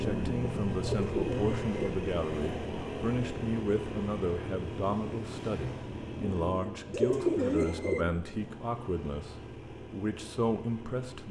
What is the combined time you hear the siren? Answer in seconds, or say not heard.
not heard.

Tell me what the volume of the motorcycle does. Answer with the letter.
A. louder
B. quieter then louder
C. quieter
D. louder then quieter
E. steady
C.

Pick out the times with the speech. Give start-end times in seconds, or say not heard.
0.0-11.2.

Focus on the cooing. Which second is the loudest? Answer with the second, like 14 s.
7 s.